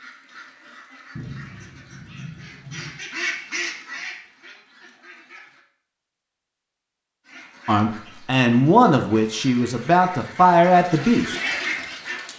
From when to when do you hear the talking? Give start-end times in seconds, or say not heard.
7.7-11.3.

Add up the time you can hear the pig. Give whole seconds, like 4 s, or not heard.
not heard.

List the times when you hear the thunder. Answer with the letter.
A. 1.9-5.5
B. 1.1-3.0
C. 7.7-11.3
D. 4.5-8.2
B.